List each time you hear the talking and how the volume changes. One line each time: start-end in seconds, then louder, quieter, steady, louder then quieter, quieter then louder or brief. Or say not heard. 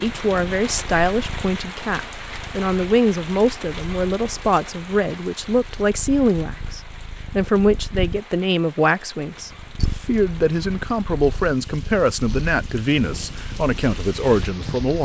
0.0-14.9 steady.